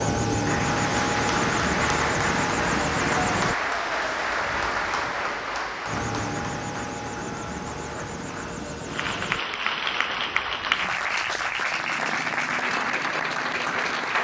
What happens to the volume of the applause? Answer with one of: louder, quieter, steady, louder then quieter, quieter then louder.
quieter then louder.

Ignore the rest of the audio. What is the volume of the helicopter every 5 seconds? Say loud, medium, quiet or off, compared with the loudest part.
loud, medium, quiet.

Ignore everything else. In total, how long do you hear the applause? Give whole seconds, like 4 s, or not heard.
14 s.